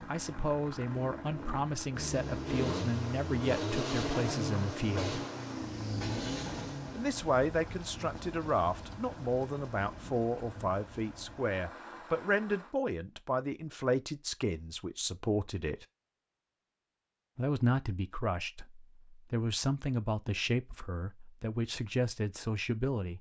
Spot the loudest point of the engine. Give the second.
4 s.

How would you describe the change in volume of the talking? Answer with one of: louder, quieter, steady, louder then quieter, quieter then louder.
steady.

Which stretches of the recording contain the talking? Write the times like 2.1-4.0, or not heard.
0.0-5.2, 7.0-15.8, 17.4-23.1.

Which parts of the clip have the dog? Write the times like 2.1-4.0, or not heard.
not heard.